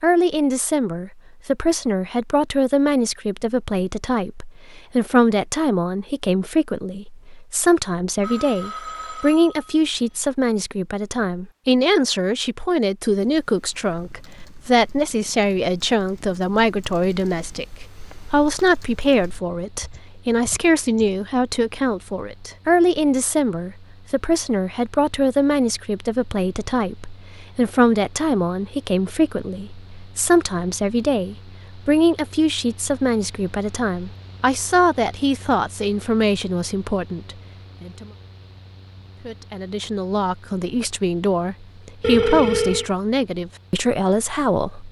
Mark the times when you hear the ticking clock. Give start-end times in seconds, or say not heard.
not heard.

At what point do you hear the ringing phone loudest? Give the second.
42 s.